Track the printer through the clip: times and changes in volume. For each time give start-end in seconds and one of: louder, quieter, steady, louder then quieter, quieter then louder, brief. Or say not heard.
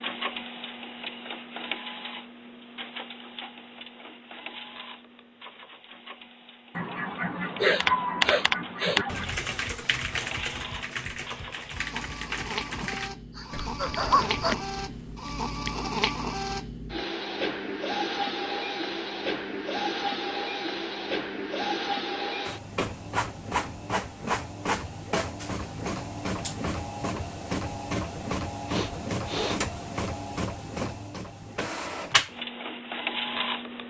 0.0-33.8 louder.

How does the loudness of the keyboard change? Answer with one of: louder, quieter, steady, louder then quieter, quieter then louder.
quieter.